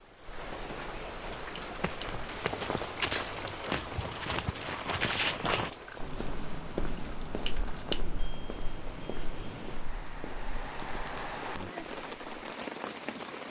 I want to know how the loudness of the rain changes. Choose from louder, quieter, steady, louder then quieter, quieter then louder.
quieter then louder.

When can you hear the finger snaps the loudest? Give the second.
8 s.